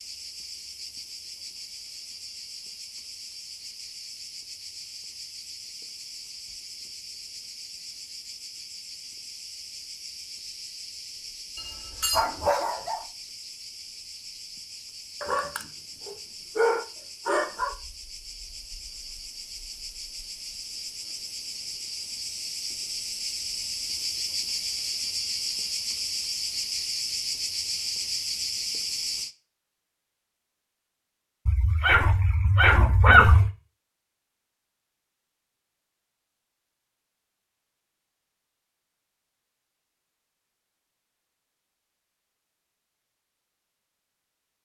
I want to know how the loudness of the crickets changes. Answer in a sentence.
The volume of the crickets goes up.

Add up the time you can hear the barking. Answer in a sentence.
The barking can be heard for 6 seconds in total.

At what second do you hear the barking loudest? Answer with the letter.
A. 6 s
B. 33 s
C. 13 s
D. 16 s
B.